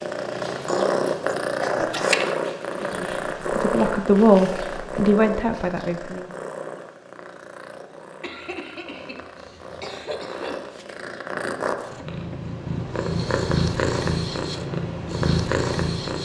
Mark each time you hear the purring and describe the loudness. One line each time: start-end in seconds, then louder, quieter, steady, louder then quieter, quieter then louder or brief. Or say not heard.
0.0-16.1 quieter then louder.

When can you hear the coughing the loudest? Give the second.
2 s.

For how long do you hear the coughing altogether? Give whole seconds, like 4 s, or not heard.
4 s.